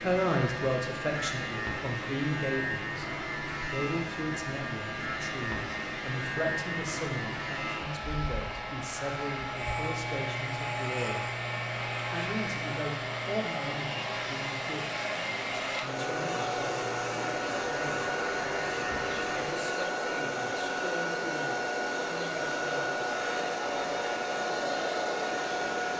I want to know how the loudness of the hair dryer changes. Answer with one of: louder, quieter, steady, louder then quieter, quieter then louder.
louder.